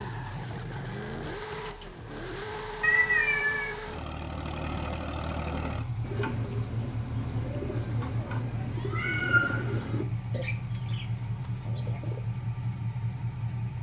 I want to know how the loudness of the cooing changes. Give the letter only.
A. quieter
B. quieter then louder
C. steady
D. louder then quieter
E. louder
A.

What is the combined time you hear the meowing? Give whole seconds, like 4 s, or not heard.
2 s.